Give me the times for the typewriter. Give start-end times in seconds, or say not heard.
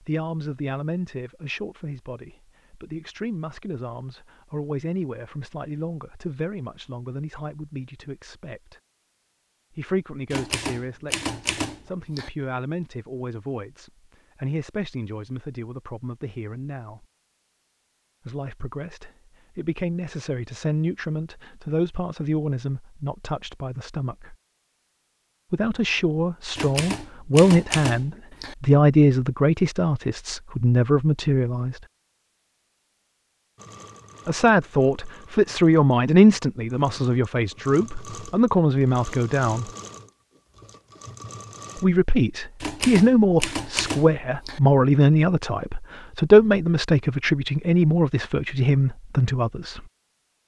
10.3-12.3, 26.6-28.6, 42.6-44.6.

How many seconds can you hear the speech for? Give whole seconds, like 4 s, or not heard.
42 s.